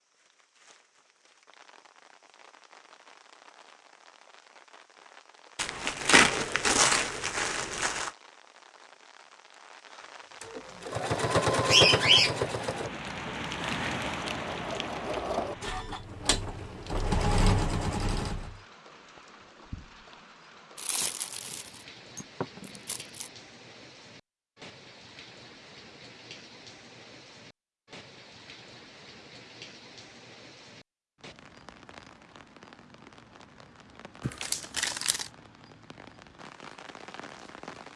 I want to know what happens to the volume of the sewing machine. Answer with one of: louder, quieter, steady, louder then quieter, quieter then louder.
quieter then louder.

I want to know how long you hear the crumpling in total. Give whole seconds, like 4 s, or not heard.
6 s.